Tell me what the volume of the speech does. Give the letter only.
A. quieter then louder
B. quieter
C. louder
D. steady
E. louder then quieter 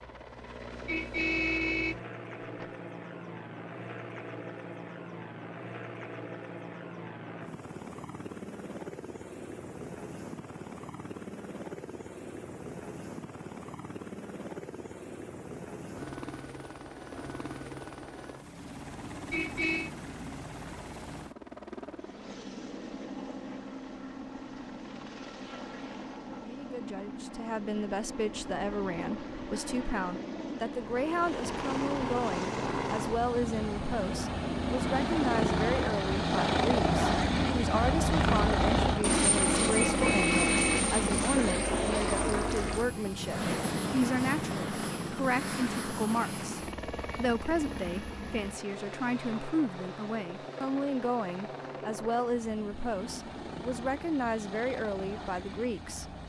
D.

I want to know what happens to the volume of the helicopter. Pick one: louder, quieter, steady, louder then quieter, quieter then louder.
louder then quieter.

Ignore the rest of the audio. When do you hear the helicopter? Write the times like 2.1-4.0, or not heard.
0.0-56.2.